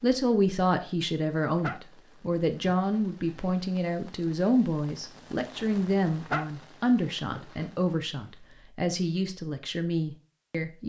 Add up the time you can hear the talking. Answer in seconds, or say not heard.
11 s.